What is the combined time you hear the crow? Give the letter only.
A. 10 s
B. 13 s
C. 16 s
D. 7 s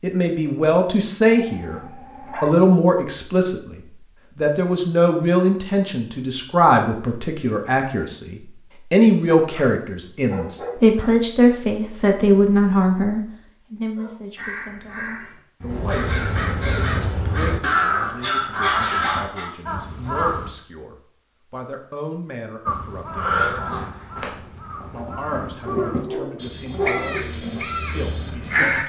B.